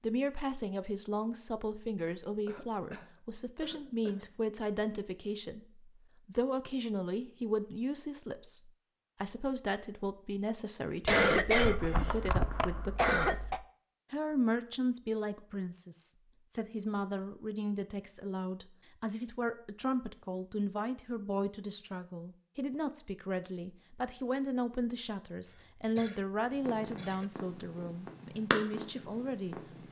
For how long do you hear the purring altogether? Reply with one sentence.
The purring can be heard for 3 seconds in total.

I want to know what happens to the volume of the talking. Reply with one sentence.
The loudness of the talking stays about the same.